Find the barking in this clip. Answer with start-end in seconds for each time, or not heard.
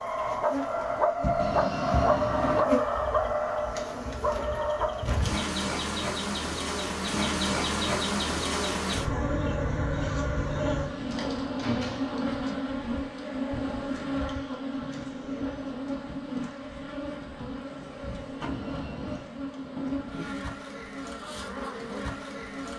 0.0-5.0.